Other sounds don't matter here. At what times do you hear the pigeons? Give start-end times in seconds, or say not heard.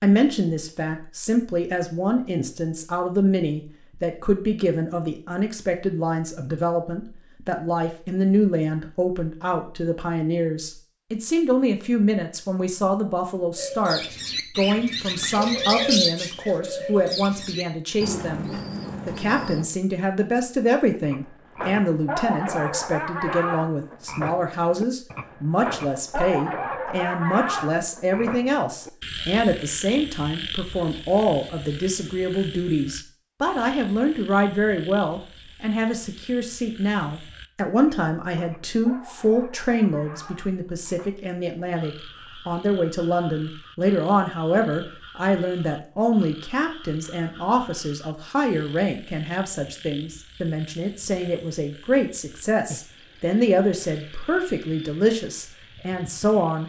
13.6-19.6.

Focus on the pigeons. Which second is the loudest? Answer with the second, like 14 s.
16 s.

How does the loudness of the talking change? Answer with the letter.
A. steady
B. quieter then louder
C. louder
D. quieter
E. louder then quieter
A.